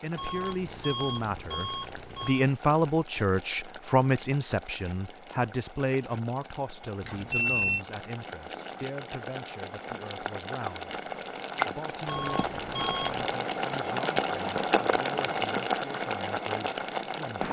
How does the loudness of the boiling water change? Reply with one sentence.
The loudness of the boiling water goes up.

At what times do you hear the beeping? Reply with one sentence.
The beeping can be heard from 0.1 to 2.5 s, from 7.0 to 7.8 s and from 12.1 to 13.2 s.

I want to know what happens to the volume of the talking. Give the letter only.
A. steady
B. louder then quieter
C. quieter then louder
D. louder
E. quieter
E.